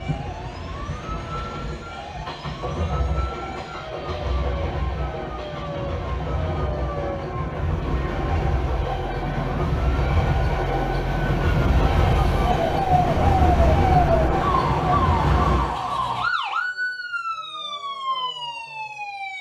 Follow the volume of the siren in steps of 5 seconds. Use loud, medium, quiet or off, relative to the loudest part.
quiet, medium, loud, loud.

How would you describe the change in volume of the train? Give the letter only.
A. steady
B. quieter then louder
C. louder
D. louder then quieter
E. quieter
C.